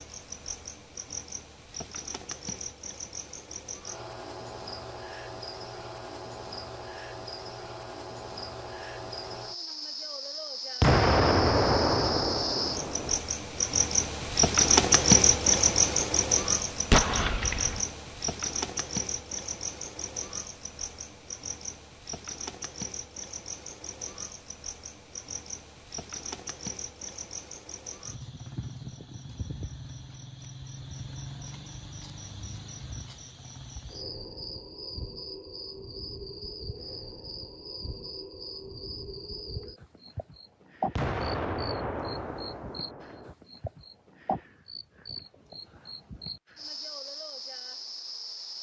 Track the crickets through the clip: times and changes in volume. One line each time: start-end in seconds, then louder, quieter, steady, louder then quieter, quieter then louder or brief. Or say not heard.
0.0-48.5 louder then quieter.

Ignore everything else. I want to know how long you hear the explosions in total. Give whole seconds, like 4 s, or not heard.
6 s.